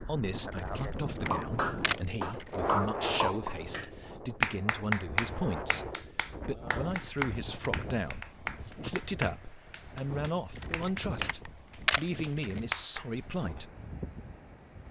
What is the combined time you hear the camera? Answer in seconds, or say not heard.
5 s.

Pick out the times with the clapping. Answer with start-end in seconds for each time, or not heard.
1.2-13.1.